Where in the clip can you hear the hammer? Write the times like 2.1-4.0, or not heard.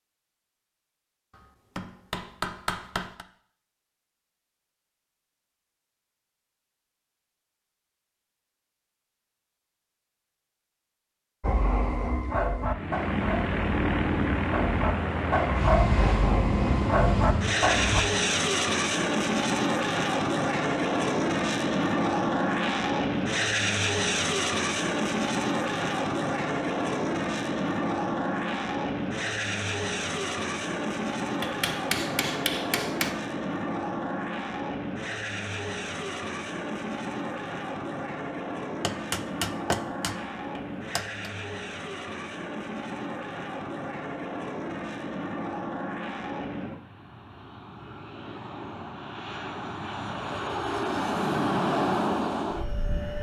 1.8-3.2, 31.4-33.1, 38.8-41.3.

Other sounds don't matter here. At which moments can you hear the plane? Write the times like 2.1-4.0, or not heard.
12.7-53.1.